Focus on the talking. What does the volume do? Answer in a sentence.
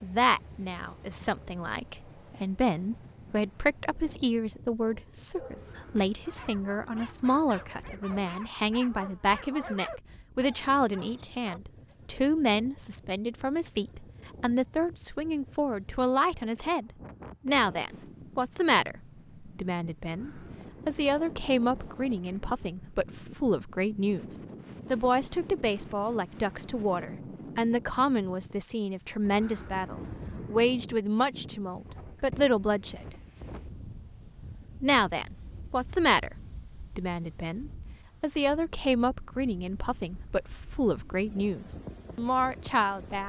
The volume of the talking stays about the same.